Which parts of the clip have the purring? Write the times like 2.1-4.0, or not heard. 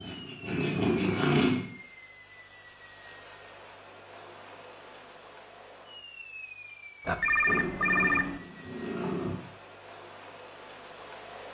0.0-1.6, 7.5-9.3.